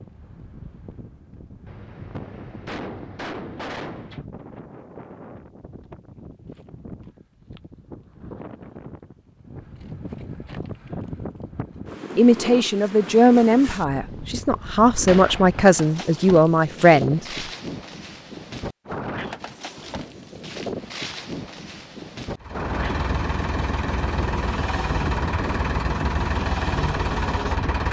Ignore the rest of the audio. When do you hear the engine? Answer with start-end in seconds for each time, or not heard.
22.4-27.8.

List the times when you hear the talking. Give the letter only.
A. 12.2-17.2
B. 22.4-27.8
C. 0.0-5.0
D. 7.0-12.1
A.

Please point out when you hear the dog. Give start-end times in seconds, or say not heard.
not heard.